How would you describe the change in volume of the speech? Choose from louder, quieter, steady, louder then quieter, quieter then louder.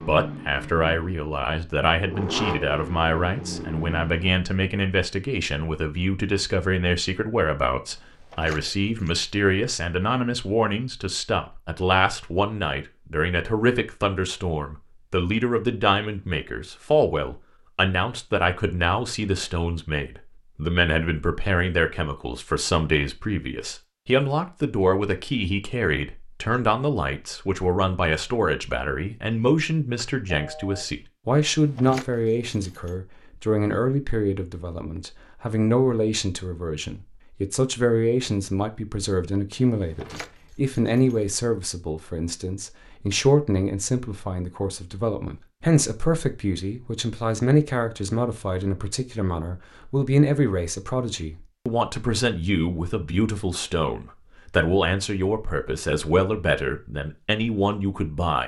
steady.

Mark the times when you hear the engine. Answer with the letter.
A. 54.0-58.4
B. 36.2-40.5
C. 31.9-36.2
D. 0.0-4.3
D.